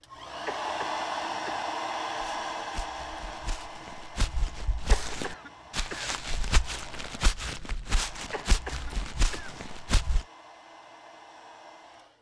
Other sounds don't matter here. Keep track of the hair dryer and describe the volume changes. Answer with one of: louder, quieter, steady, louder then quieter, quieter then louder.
quieter.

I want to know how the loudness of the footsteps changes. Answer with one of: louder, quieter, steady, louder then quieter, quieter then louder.
louder.